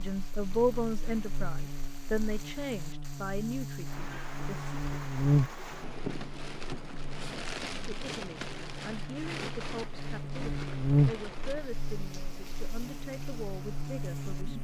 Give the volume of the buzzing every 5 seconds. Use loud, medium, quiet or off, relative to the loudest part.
medium, loud, loud.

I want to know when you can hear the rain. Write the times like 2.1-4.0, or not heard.
0.0-14.5.